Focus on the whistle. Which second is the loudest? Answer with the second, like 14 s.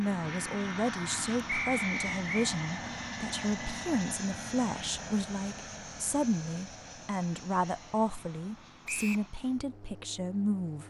2 s.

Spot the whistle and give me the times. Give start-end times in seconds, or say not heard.
1.4-2.5, 8.8-9.3.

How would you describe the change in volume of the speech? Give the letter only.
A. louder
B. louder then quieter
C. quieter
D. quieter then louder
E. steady
E.